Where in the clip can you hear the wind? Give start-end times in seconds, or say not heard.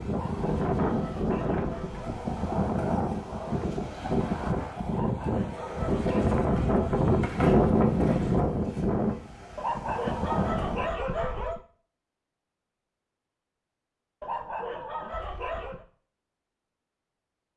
0.0-10.9.